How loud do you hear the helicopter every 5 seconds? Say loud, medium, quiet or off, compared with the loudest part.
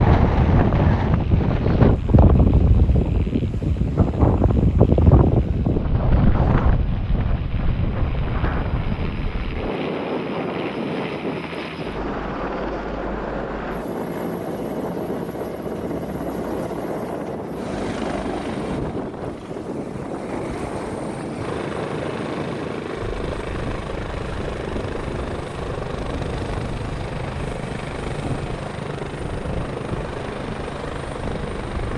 quiet, medium, loud, loud, loud, loud, loud.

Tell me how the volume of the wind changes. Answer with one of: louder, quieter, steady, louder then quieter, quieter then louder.
quieter.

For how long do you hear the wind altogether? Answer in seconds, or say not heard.
32 s.